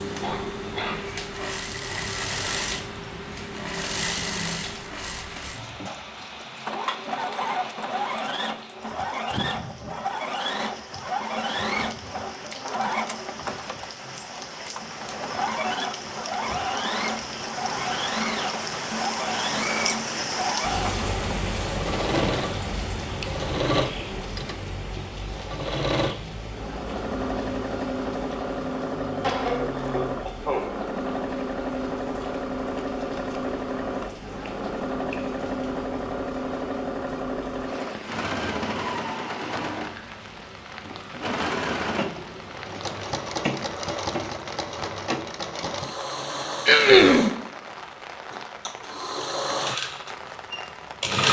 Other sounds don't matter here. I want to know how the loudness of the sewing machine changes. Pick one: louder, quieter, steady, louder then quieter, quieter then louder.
steady.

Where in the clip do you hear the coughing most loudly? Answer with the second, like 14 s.
47 s.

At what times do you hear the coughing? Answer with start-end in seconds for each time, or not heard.
0.2-1.1, 29.2-30.6, 46.6-47.3.